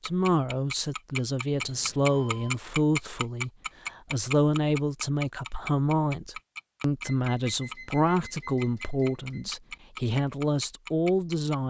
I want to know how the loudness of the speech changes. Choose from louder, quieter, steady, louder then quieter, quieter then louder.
steady.